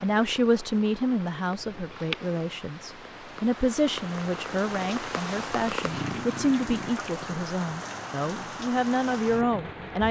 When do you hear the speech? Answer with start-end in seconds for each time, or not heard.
0.0-10.0.